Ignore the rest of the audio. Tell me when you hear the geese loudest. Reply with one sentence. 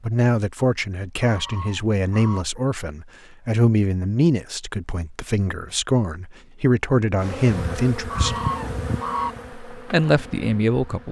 The volume of the geese peaks at 9 seconds.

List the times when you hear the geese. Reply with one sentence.
You can hear the geese from 1.1 to 2.5 s and from 8.1 to 9.3 s.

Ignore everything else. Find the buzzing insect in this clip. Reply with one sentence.
You can hear the buzzing insect from 7.2 to 11.0 s.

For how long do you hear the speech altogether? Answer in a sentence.
The speech can be heard for 10 seconds in total.